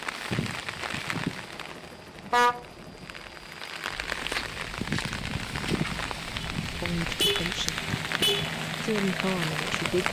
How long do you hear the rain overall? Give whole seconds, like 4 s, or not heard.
10 s.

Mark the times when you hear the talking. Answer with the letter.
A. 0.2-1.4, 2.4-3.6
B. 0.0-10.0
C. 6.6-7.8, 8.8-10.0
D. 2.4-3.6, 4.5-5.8
C.